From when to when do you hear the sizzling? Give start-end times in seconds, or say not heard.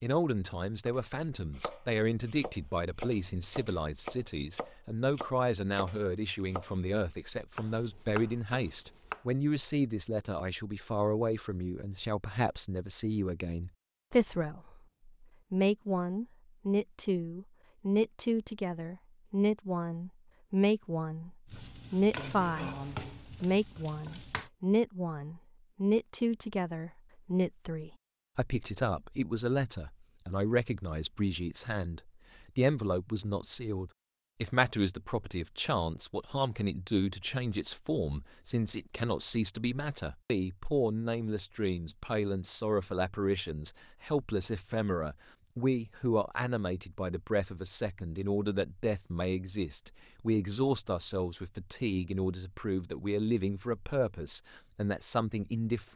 21.5-24.5.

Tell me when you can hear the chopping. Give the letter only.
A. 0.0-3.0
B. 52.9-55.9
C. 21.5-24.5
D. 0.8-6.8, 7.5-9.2
D.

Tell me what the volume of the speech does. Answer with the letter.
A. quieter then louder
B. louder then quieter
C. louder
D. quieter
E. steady
E.